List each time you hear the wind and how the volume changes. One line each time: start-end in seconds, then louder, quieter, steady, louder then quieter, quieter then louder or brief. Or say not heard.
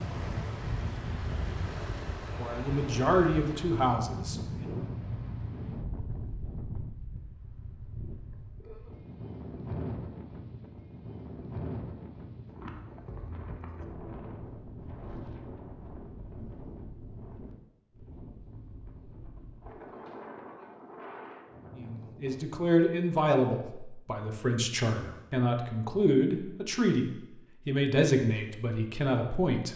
0.0-22.4 quieter.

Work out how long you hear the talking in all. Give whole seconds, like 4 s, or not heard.
10 s.